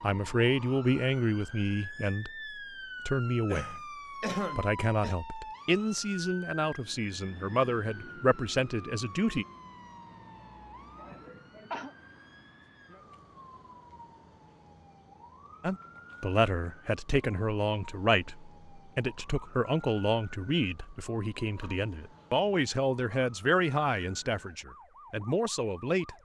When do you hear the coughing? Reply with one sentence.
You can hear the coughing from 3.5 to 5.2 s, from 10.9 to 11.9 s and from 21.6 to 22.3 s.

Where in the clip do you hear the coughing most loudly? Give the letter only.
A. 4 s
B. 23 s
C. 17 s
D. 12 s
A.